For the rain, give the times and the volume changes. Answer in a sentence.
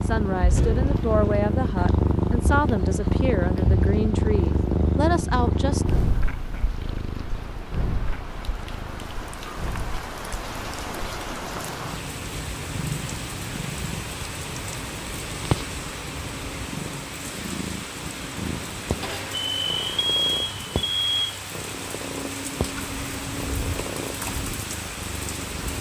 You can hear the rain from 0.0 to 25.7 s, getting louder.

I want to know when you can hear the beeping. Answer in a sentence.
The beeping can be heard from 19.0 to 21.4 s.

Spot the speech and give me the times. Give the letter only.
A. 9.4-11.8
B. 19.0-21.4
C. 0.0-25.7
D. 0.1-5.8
D.